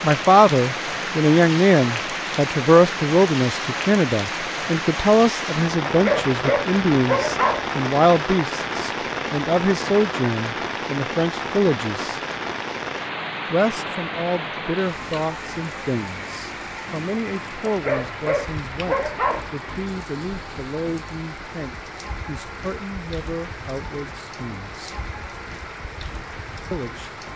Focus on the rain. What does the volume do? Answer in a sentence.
The volume of the rain goes down.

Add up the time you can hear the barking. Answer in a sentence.
The barking can be heard for 4 seconds in total.